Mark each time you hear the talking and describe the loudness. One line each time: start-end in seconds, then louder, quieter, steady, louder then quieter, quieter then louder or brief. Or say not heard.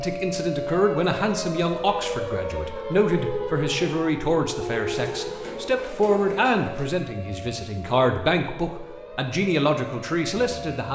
0.0-10.8 steady.